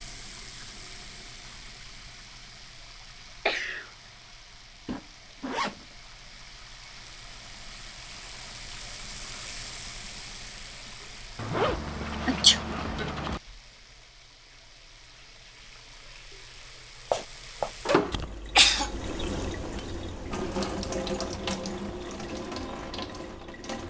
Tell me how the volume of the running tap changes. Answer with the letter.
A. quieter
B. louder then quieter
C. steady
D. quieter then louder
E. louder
E.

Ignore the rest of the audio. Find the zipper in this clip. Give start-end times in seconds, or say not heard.
4.8-5.8, 11.3-13.4, 17.1-18.0.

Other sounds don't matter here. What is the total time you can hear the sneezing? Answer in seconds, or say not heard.
2 s.